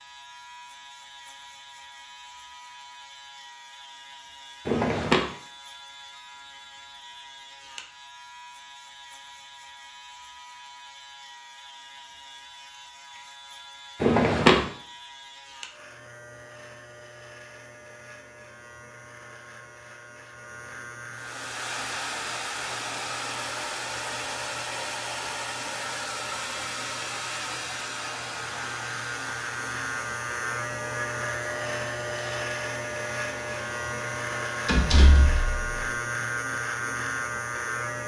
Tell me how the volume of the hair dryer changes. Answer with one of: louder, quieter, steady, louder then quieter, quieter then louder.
quieter.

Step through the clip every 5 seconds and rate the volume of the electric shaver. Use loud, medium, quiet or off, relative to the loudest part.
quiet, quiet, quiet, quiet, medium, medium, loud, loud.